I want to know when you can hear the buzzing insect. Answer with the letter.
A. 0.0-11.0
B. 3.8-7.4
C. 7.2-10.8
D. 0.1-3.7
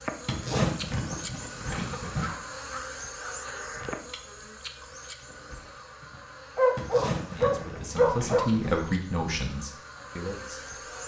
A.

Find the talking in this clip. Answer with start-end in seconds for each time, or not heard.
7.2-10.8.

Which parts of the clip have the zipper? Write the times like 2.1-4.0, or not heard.
0.2-2.3, 6.8-8.8.